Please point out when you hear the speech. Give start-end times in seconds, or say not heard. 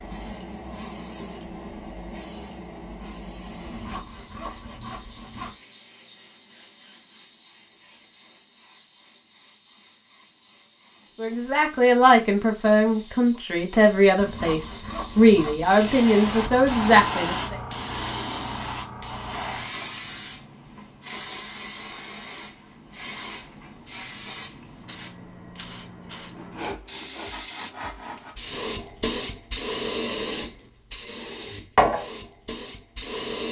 11.2-17.6.